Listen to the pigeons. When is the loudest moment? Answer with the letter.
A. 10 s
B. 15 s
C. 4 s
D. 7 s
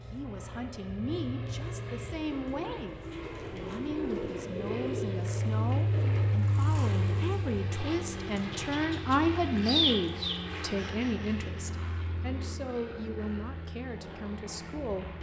A.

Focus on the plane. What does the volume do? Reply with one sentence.
The loudness of the plane goes up, then down.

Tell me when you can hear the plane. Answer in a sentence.
You can hear the plane from 0.0 to 15.1 s.